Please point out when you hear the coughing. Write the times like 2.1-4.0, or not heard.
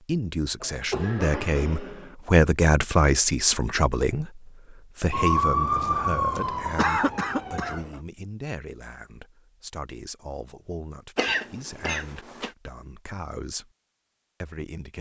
0.6-2.1, 6.3-8.0, 11.2-12.5.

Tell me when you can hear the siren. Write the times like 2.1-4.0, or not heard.
5.1-7.8.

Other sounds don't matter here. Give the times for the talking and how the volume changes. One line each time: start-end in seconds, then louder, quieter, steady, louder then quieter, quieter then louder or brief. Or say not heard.
0.0-13.7 quieter
14.4-14.9 brief.